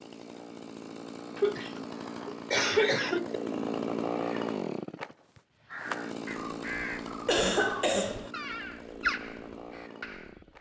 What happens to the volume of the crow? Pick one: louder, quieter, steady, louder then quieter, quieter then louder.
louder then quieter.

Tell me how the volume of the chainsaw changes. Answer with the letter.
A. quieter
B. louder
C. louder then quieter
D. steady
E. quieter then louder
C.